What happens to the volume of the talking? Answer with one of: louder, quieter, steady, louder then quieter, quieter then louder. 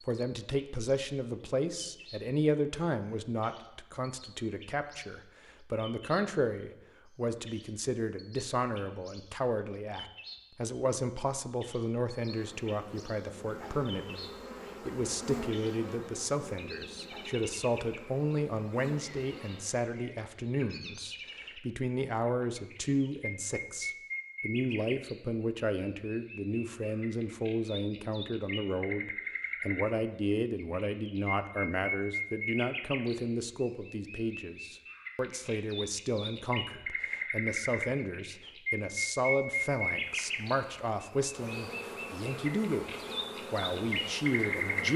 steady.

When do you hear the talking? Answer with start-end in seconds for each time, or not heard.
0.0-44.9.